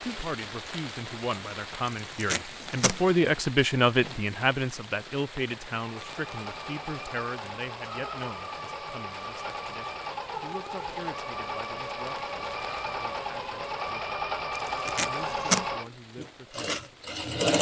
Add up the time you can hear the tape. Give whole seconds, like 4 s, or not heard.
2 s.